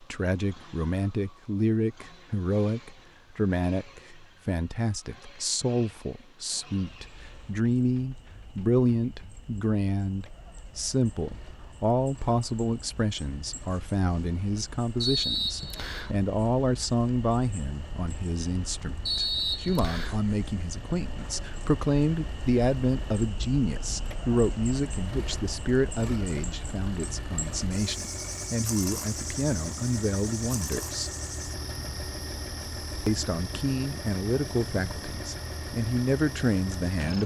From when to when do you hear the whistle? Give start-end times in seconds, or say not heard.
15.0-16.1, 19.1-20.2.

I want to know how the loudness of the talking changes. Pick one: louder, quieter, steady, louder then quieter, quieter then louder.
steady.